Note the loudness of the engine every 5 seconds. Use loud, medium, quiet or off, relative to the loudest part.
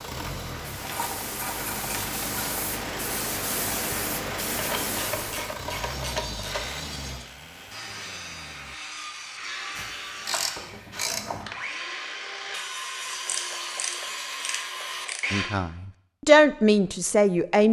loud, loud, off, off.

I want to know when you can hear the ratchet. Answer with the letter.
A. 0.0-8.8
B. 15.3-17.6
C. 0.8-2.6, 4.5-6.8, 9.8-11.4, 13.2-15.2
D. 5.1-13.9
C.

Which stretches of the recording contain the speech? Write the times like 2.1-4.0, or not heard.
15.3-17.6.